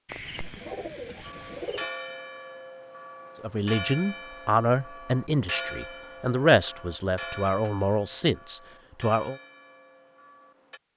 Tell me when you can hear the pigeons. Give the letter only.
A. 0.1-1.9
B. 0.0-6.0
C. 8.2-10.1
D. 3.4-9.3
A.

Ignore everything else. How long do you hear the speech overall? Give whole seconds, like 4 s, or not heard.
6 s.